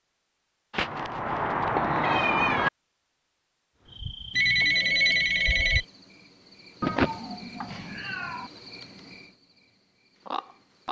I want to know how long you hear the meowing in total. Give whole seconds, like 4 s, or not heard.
4 s.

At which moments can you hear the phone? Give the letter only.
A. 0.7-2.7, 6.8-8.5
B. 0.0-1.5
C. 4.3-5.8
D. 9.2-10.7
C.